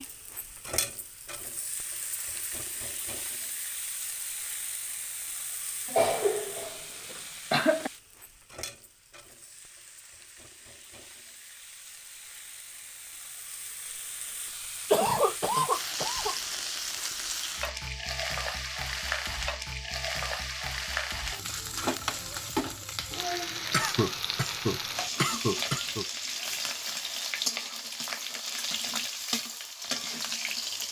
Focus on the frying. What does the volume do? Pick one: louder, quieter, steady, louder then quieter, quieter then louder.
quieter then louder.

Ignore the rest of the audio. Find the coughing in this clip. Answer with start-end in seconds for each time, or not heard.
5.8-7.9, 14.9-16.4, 23.7-26.1.